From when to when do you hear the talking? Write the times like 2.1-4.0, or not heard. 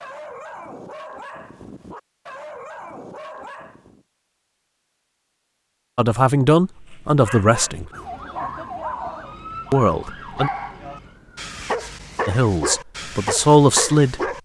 6.0-7.9, 9.7-10.5, 12.2-14.2.